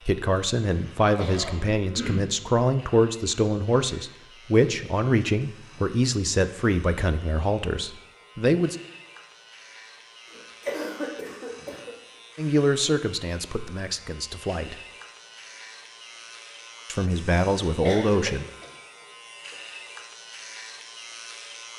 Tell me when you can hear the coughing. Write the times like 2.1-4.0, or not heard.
1.1-2.2, 10.3-11.9, 17.9-18.7.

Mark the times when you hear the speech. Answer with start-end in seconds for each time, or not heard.
0.1-8.8, 12.3-14.8, 16.9-18.4.